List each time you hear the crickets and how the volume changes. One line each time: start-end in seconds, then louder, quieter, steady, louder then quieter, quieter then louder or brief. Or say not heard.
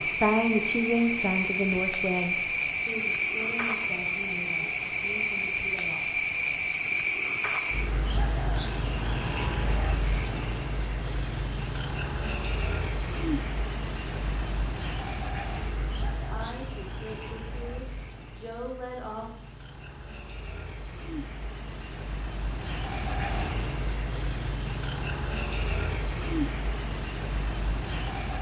0.0-28.3 quieter then louder.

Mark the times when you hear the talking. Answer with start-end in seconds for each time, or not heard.
0.0-6.2, 16.2-19.3.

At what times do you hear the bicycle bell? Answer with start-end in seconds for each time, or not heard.
not heard.